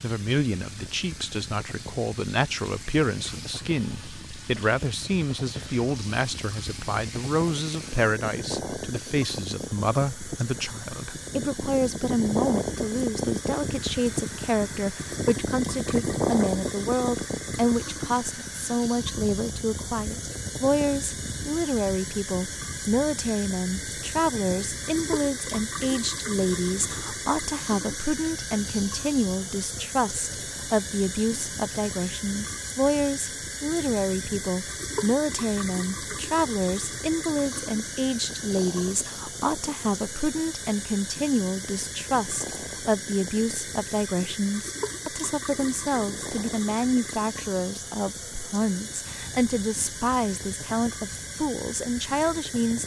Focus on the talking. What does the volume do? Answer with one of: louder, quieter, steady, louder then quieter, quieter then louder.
steady.